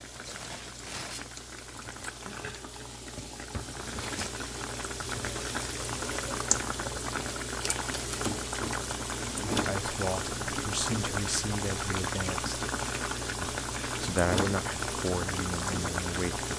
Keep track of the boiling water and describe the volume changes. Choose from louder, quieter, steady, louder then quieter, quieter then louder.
louder.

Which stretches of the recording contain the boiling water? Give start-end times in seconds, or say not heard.
0.0-16.5.